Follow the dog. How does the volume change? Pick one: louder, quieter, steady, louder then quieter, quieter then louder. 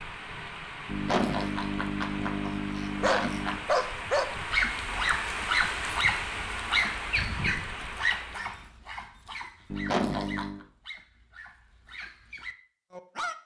quieter.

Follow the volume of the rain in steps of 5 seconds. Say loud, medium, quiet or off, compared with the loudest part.
loud, loud, off.